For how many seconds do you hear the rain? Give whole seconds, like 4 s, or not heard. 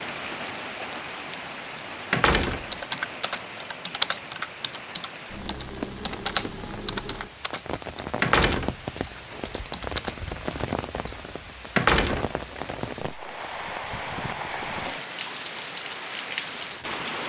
17 s.